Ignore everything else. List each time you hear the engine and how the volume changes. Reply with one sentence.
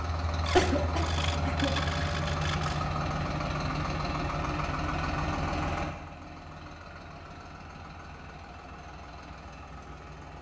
The engine can be heard from 0.0 to 10.3 s, getting quieter.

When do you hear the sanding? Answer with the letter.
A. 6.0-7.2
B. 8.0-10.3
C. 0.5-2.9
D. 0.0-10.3
C.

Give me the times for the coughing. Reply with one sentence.
You can hear the coughing from 0.6 to 1.8 s.